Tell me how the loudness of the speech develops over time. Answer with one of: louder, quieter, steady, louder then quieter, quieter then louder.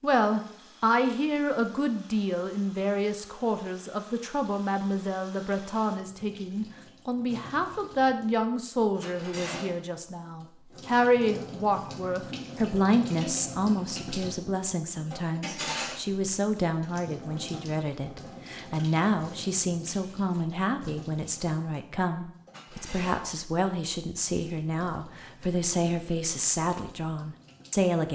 steady.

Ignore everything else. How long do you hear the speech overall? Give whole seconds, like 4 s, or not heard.
28 s.